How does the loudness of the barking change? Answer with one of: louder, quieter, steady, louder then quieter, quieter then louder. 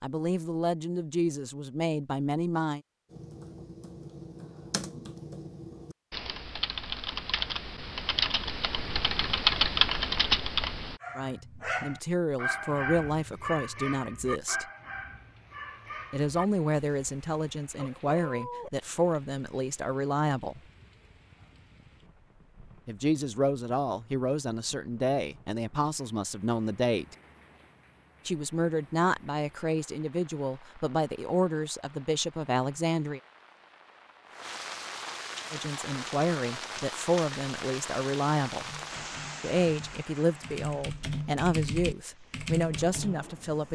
quieter.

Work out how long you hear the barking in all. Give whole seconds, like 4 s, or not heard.
8 s.